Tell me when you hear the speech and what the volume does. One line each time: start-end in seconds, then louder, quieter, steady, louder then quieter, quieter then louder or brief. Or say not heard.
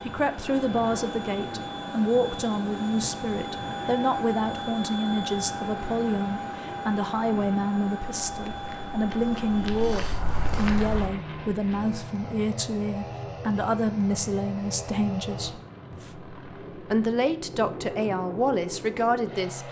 0.0-19.6 steady.